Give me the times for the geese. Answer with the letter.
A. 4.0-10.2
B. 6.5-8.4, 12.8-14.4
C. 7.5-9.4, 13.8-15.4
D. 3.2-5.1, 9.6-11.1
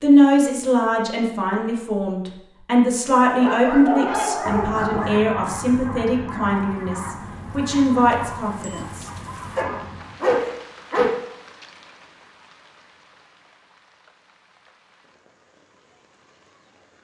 A.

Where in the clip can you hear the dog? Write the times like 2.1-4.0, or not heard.
3.2-5.1, 9.6-11.1.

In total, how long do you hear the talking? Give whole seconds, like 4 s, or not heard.
9 s.